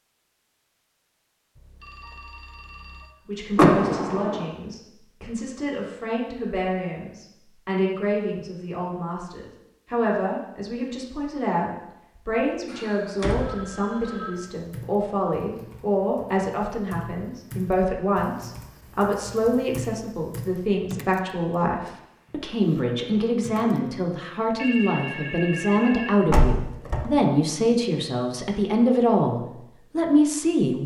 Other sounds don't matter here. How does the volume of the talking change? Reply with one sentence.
The loudness of the talking goes up.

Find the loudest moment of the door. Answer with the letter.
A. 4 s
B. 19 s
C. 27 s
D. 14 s
A.